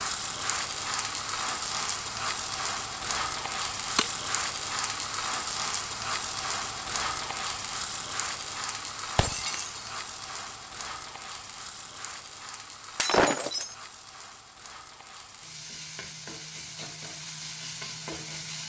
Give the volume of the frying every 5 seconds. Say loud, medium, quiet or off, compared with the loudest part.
loud, loud, medium, medium.